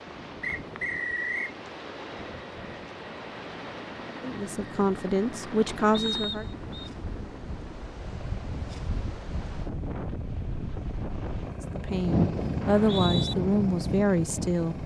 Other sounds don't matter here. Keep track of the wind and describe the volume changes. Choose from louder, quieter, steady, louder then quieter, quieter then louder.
louder.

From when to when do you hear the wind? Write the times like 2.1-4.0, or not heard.
0.0-14.8.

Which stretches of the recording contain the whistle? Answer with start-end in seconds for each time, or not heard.
0.4-1.6, 5.9-6.9, 12.6-13.3.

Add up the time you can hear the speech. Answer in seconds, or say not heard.
5 s.